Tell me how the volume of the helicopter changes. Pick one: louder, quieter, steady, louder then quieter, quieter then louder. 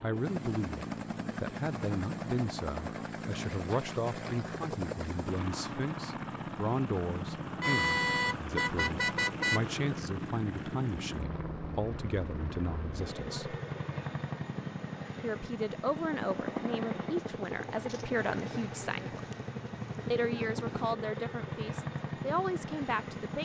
steady.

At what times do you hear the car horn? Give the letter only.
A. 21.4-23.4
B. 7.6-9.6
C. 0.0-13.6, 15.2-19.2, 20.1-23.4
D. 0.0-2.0
B.